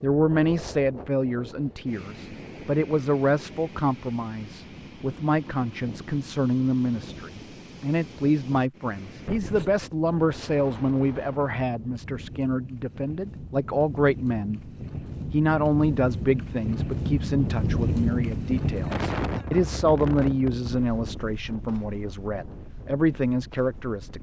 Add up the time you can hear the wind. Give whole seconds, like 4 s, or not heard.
24 s.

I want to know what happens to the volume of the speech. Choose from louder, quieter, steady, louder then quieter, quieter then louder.
steady.